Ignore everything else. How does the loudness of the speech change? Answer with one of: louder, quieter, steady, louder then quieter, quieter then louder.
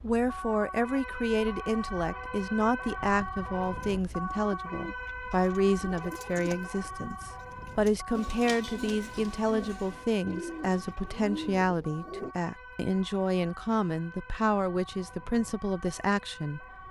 steady.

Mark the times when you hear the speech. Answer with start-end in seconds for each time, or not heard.
0.0-16.6.